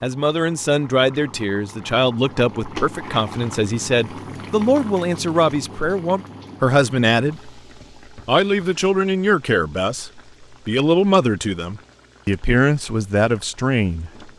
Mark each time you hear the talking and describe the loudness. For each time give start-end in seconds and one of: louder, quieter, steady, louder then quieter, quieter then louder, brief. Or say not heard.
0.0-14.3 steady.